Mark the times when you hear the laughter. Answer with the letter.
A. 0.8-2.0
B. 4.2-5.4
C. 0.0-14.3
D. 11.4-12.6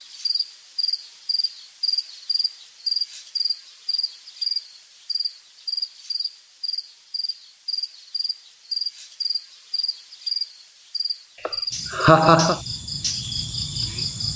D.